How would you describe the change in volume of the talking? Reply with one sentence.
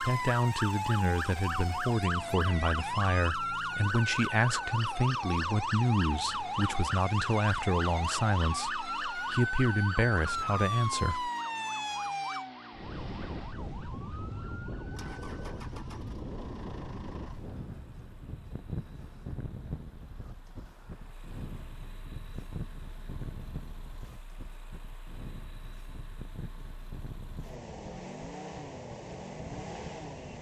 The loudness of the talking stays about the same.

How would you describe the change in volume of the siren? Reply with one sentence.
The loudness of the siren goes down.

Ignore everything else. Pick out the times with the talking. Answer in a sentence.
The talking can be heard from 0.0 to 11.3 s.